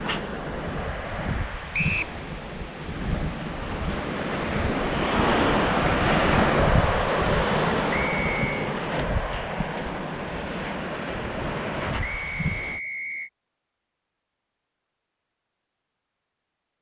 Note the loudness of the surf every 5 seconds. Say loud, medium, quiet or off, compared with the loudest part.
medium, loud, medium, off.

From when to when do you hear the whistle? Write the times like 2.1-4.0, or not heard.
1.7-2.1, 7.9-8.8, 12.0-13.3.